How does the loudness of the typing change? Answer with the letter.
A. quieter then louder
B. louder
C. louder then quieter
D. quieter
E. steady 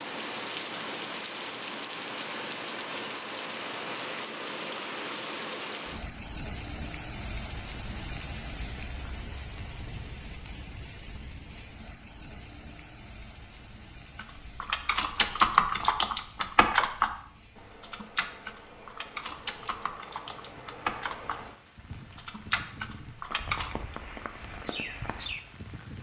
D.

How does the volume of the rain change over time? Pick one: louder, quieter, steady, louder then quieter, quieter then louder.
quieter then louder.